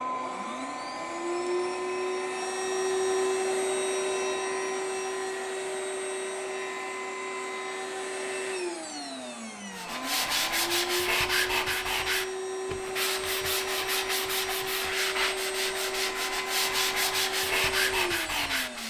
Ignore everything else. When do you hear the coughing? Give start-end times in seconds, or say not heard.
not heard.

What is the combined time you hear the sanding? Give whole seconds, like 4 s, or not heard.
9 s.